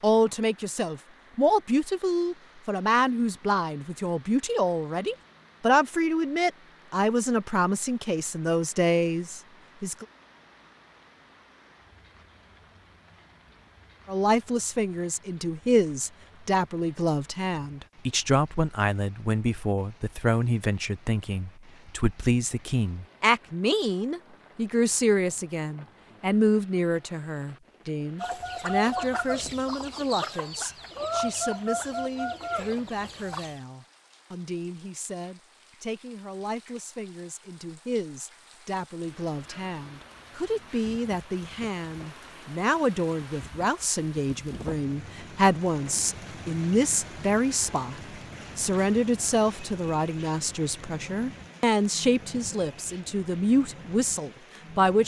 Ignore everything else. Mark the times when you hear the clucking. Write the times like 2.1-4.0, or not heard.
28.2-33.6.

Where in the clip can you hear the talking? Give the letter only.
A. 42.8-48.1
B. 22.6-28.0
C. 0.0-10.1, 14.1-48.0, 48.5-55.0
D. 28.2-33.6
C.